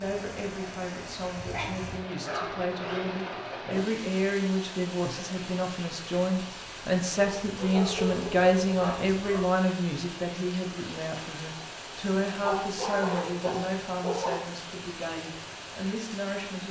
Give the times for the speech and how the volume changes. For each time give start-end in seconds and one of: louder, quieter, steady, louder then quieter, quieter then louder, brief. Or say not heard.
0.0-16.6 louder then quieter.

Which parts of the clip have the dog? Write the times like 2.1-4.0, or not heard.
1.5-3.9, 7.4-9.4, 12.4-14.3.